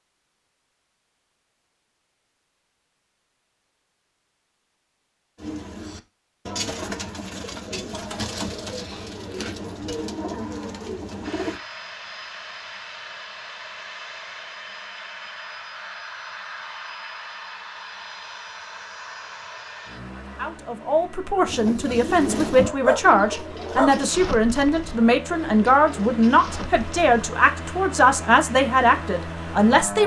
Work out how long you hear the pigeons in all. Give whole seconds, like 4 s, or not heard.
12 s.